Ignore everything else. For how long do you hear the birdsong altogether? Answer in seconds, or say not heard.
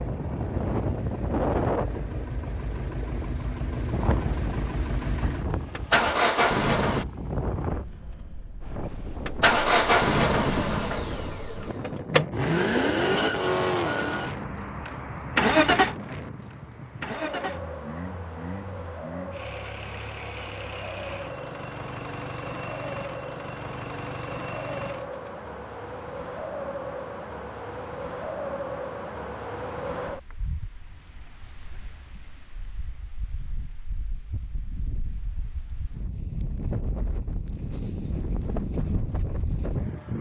not heard.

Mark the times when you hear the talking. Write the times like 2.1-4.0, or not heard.
not heard.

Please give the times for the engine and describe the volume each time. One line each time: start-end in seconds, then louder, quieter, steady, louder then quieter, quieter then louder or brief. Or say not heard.
0.0-7.0 louder
9.2-25.3 quieter.